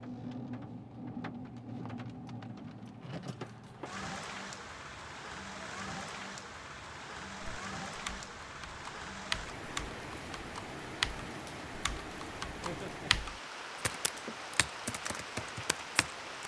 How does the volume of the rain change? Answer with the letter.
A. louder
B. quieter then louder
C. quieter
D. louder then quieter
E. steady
E.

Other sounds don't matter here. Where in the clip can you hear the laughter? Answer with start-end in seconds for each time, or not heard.
12.6-13.1.